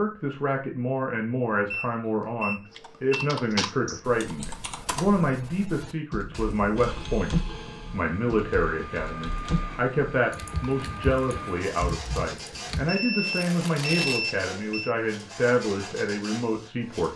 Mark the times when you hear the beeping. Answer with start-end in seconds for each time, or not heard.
1.7-3.2, 6.3-7.0, 12.8-14.9.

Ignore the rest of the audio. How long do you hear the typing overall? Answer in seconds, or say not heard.
10 s.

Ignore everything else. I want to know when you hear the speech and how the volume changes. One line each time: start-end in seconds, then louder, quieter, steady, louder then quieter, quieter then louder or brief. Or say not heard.
0.0-17.1 steady.